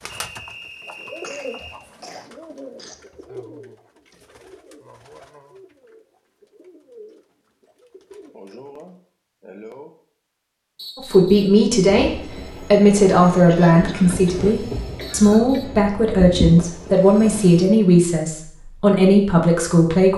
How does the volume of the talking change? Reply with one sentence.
The loudness of the talking stays about the same.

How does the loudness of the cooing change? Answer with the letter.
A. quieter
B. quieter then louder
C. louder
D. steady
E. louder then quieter
A.